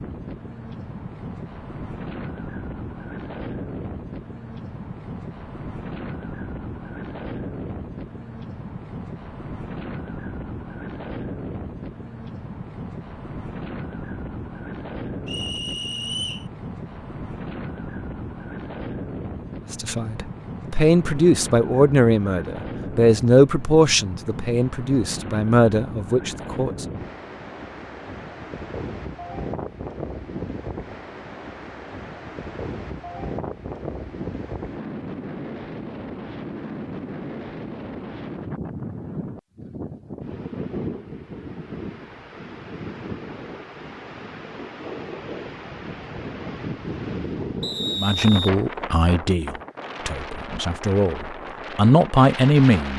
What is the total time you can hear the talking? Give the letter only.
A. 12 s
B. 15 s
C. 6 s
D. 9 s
A.